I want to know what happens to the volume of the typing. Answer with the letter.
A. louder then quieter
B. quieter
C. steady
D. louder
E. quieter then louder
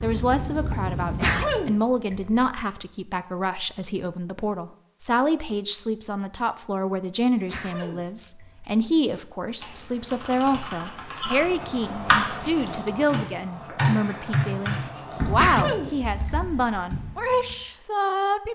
A.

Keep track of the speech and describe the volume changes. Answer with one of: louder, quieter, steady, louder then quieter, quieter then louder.
steady.